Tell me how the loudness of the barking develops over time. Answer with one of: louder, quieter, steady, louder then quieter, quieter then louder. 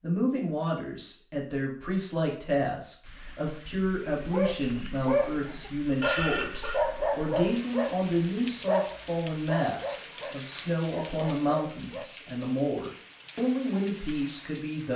quieter.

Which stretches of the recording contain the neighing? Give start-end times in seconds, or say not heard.
6.0-6.8.